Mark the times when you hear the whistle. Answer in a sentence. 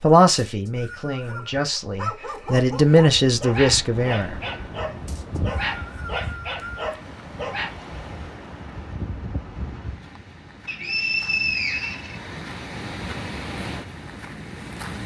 The whistle can be heard from 0.5 to 1.5 s, from 5.0 to 6.8 s and from 10.7 to 12.2 s.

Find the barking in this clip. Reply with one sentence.
You can hear the barking from 1.2 to 7.8 s.